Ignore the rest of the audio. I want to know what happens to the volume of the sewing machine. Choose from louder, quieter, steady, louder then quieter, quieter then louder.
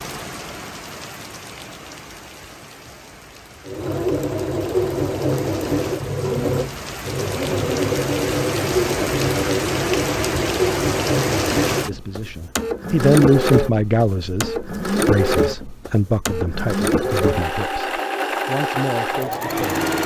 steady.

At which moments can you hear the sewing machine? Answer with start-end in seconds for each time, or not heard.
3.6-20.0.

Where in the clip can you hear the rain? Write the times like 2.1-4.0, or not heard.
0.0-11.9.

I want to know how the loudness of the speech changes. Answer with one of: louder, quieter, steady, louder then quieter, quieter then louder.
quieter.